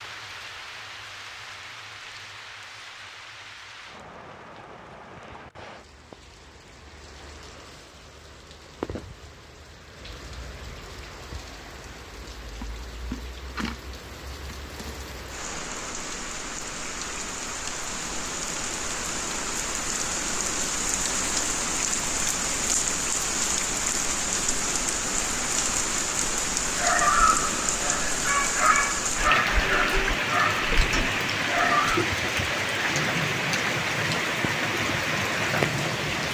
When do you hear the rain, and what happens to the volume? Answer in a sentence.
The rain can be heard from 0.0 to 36.2 s, getting louder.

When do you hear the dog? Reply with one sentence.
You can hear the dog from 26.6 to 32.0 s.